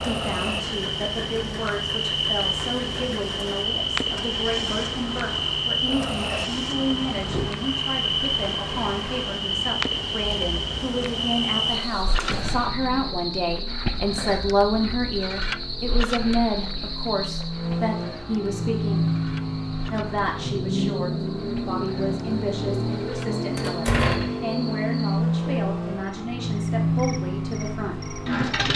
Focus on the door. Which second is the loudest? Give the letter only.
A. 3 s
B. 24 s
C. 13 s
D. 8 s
B.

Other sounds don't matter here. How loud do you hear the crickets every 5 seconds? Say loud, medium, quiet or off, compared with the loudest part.
loud, loud, loud, medium, quiet, quiet.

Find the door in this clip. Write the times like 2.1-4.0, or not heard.
6.8-7.5, 12.2-12.8, 23.6-24.4.